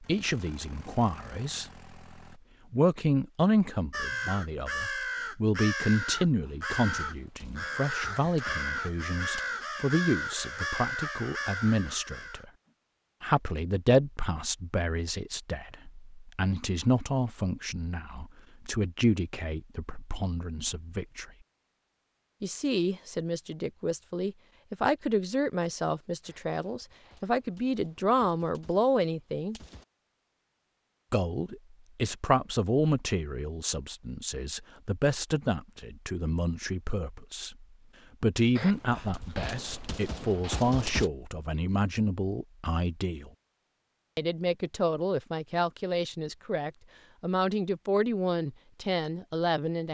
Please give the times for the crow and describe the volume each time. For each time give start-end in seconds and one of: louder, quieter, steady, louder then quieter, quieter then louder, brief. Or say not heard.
3.9-12.4 steady.